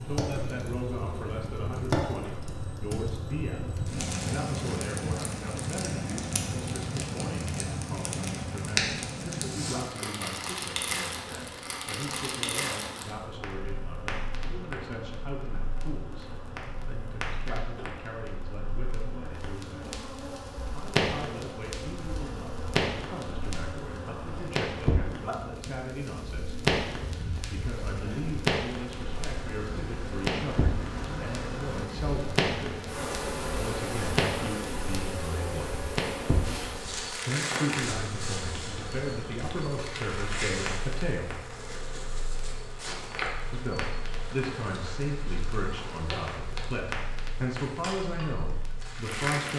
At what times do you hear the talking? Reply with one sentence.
You can hear the talking from 0.1 to 19.9 s, from 20.7 to 26.6 s, from 27.3 to 35.8 s, from 37.2 to 41.5 s and from 43.5 to 49.5 s.